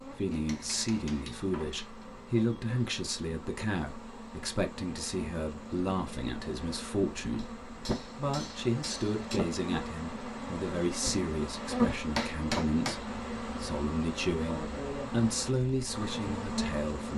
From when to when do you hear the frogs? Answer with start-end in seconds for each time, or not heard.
not heard.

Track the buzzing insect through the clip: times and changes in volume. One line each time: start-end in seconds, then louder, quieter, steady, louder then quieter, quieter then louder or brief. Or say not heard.
0.0-17.1 louder.